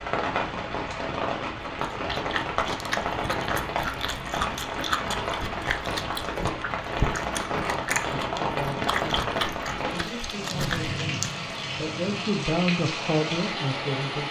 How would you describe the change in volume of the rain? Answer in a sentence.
The volume of the rain stays about the same.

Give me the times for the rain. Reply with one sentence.
You can hear the rain from 0.0 to 14.2 s.